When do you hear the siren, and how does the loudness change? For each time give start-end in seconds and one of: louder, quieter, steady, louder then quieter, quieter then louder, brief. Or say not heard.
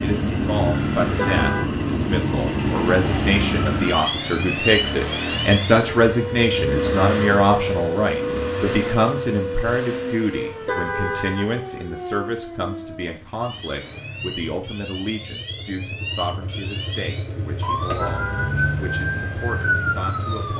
0.0-20.5 quieter then louder.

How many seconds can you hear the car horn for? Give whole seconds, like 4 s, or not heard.
2 s.